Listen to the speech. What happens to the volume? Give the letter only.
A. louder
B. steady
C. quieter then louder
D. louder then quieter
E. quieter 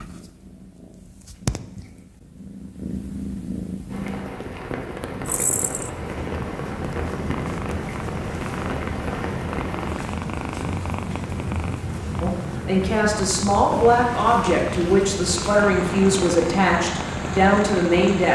B.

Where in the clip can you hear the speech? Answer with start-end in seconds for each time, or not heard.
12.2-18.3.